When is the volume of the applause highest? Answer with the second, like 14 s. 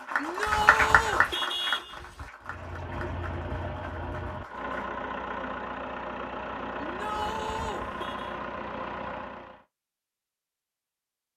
1 s.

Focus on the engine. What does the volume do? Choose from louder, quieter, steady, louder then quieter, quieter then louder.
steady.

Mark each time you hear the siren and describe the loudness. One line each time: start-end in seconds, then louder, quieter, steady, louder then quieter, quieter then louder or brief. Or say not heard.
not heard.